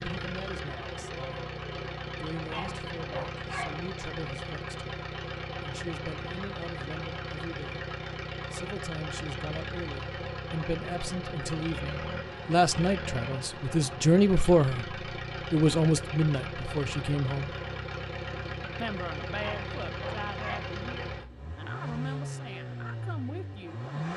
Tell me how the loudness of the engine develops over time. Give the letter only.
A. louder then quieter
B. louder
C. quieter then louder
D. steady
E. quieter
D.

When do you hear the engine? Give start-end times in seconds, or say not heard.
0.0-24.1.